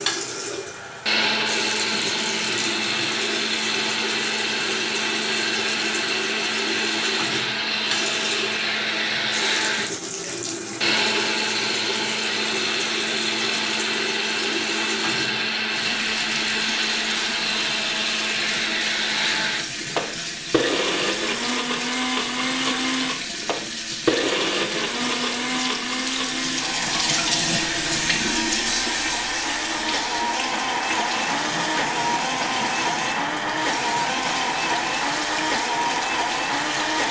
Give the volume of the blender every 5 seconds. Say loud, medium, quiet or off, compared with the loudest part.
loud, loud, loud, loud, loud, medium, loud, loud.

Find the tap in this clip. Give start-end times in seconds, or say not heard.
0.0-37.0.